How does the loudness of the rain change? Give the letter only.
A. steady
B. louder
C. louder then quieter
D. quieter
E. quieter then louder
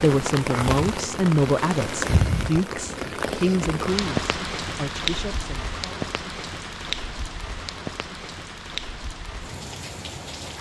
D.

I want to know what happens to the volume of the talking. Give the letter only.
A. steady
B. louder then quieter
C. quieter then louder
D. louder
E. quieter
E.